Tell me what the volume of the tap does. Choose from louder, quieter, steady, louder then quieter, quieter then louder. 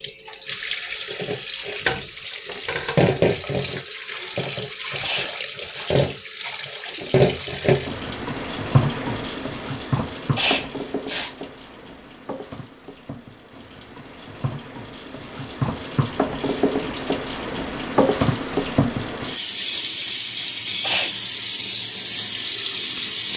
quieter then louder.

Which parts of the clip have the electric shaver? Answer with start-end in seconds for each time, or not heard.
not heard.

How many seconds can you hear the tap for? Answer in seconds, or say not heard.
23 s.